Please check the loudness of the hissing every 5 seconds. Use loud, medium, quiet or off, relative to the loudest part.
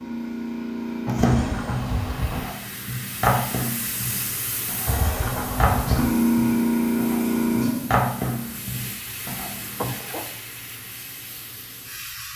medium, loud, quiet.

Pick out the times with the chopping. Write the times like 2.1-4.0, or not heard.
1.1-9.9.